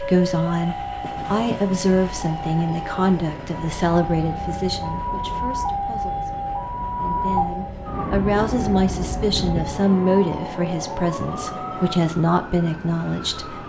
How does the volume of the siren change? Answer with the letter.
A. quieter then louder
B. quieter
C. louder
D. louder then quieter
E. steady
D.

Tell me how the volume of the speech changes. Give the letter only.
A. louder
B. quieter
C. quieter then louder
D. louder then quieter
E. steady
C.